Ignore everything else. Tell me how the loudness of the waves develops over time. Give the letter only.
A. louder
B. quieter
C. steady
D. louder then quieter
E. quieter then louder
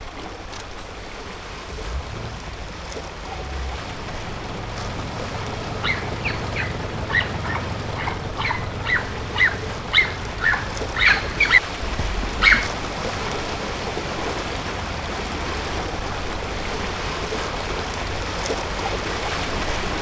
A.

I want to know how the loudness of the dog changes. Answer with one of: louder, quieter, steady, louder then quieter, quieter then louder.
louder.